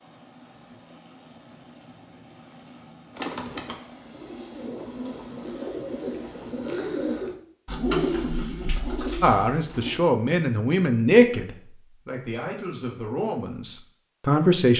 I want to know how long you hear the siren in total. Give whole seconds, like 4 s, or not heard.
not heard.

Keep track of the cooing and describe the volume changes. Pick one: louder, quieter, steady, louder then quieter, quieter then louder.
louder then quieter.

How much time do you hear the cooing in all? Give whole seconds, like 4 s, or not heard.
7 s.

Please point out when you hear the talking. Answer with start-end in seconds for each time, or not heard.
9.2-14.7.